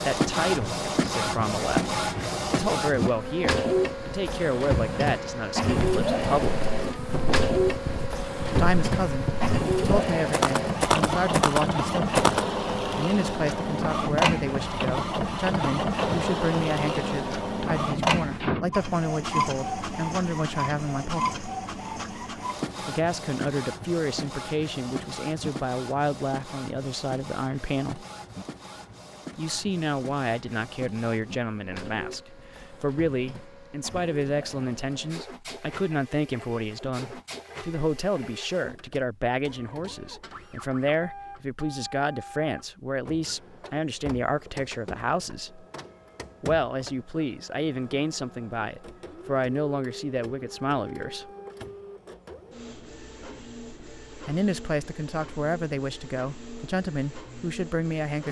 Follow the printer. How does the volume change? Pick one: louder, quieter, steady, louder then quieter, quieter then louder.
quieter.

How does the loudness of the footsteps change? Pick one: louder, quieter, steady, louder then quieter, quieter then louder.
louder.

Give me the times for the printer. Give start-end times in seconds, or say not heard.
0.0-58.2.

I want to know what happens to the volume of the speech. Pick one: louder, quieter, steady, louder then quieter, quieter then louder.
steady.